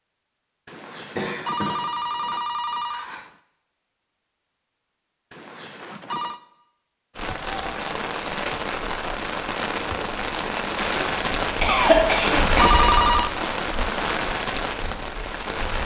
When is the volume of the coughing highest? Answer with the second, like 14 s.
12 s.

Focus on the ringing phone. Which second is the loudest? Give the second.
13 s.